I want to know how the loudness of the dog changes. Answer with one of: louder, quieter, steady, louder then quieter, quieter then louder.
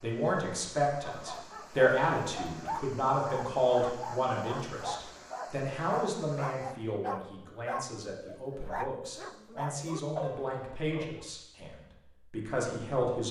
steady.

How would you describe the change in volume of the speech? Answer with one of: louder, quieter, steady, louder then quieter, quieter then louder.
quieter.